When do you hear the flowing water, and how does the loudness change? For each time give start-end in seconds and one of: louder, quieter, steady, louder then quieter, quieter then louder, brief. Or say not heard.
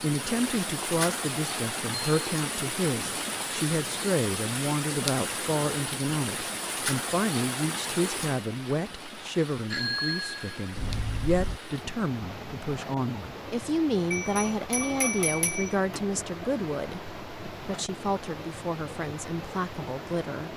0.0-20.5 quieter.